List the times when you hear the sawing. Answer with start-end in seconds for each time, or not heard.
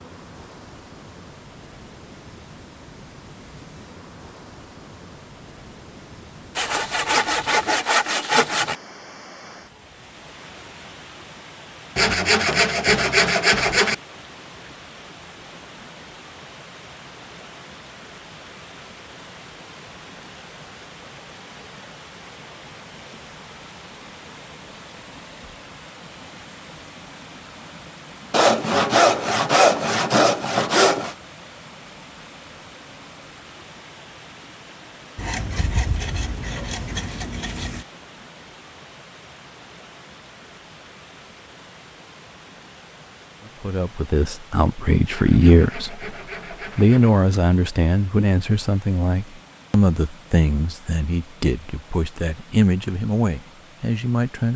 6.5-8.8, 11.9-13.9, 28.3-31.1, 35.1-37.9, 45.1-47.1.